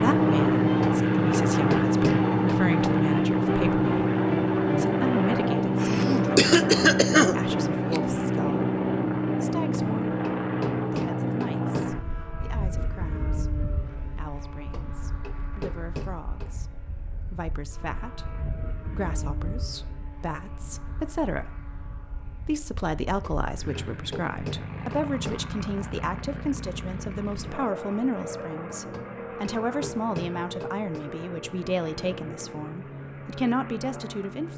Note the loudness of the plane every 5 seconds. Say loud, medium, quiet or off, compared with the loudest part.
loud, loud, medium, quiet, quiet, quiet, quiet.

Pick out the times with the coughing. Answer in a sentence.
The coughing can be heard from 5.8 to 8.0 s.